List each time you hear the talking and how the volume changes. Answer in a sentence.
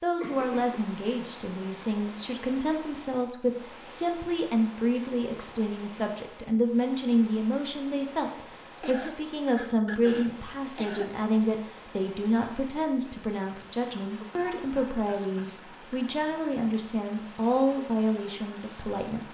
The talking can be heard from 0.0 to 19.2 s, at a steady volume.